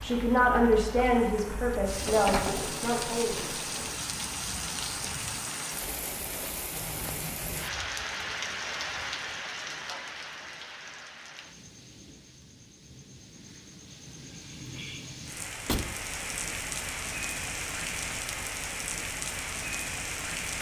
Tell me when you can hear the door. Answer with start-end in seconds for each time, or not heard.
2.0-4.0, 15.7-16.1.